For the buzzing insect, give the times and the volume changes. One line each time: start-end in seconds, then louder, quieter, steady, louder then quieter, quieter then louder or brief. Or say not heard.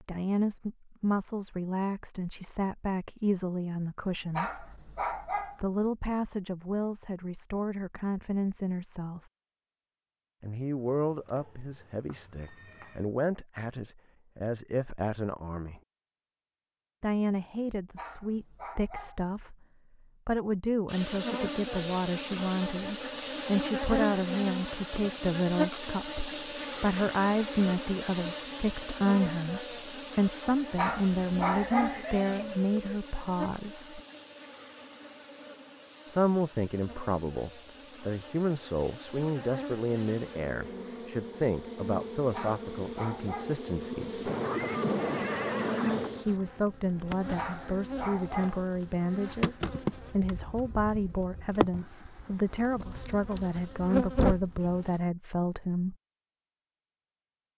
20.9-55.0 quieter then louder.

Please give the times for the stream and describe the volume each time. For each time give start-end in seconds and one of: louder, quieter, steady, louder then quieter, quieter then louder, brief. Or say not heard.
not heard.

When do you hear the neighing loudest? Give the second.
45 s.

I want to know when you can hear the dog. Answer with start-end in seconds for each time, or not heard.
4.3-5.6, 17.9-19.2, 30.8-32.0, 42.3-43.6, 47.4-48.6.